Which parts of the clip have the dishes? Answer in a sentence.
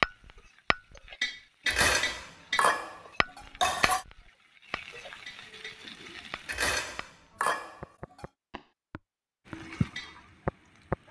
You can hear the dishes from 1.6 to 4.0 s and from 6.5 to 8.2 s.